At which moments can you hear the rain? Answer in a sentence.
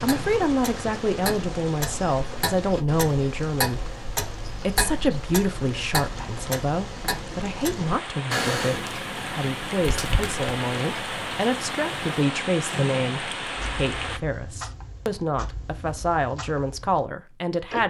The rain can be heard from 0.0 to 14.2 s.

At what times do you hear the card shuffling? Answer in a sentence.
You can hear the card shuffling from 9.8 to 10.4 s.